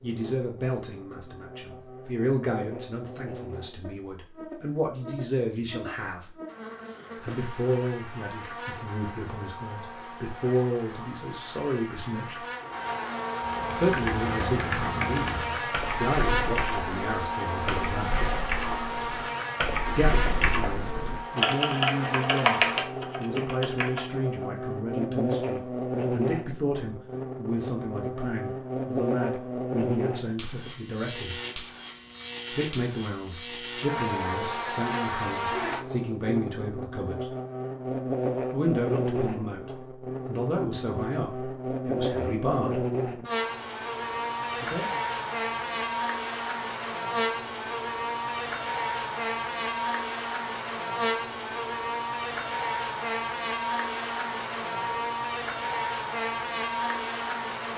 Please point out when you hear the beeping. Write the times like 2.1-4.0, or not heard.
not heard.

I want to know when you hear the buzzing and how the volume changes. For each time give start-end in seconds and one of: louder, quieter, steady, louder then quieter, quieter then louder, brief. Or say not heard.
0.0-57.7 louder.